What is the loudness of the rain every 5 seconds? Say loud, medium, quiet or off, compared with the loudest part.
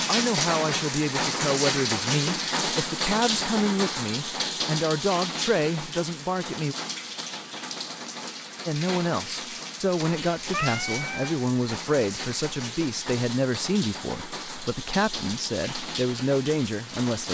loud, medium, medium, medium.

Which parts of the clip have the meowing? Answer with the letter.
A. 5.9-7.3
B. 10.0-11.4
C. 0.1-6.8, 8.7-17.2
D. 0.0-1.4
B.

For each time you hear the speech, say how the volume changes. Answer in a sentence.
You can hear the speech from 0.1 to 6.8 s, at a steady volume; and from 8.7 to 17.2 s, at a steady volume.